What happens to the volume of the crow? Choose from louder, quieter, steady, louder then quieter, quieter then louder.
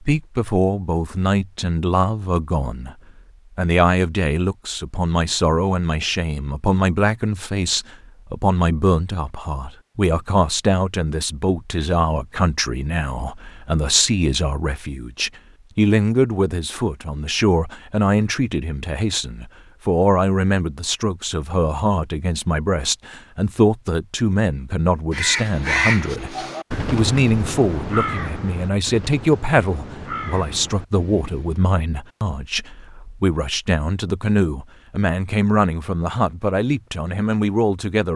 quieter.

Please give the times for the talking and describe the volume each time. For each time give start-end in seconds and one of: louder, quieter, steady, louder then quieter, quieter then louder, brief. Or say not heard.
0.0-3.0 brief
3.5-38.1 steady.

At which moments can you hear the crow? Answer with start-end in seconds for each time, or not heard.
25.1-31.7.